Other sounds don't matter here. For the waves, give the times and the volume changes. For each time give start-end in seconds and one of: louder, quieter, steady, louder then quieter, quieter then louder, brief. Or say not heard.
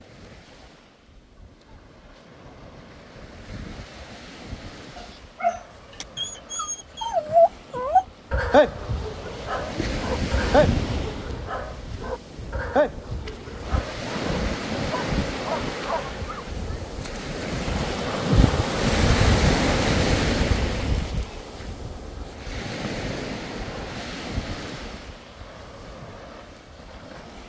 0.0-27.4 louder then quieter.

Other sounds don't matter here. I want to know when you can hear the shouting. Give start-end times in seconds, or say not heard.
not heard.